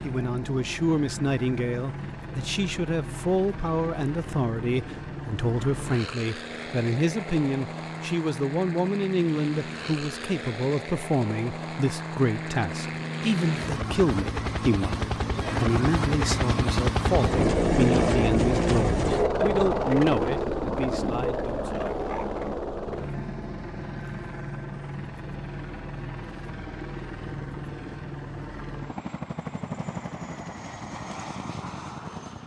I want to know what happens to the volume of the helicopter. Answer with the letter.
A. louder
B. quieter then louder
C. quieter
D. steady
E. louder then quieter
E.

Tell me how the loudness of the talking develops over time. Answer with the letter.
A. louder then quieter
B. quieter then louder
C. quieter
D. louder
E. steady
E.